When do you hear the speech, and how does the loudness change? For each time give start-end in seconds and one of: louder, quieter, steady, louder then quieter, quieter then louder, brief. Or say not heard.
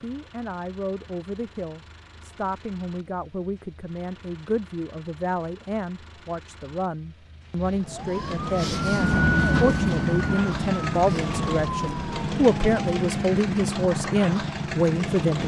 0.0-15.4 louder.